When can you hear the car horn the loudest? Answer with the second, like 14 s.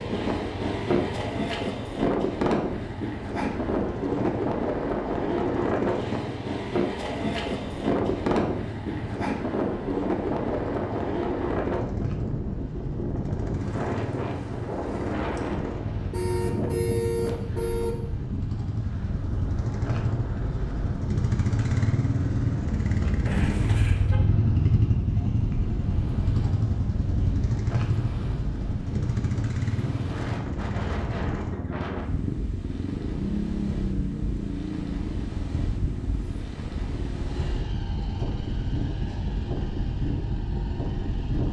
17 s.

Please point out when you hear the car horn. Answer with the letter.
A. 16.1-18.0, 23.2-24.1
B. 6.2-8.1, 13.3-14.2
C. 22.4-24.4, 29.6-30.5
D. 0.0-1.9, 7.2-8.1
A.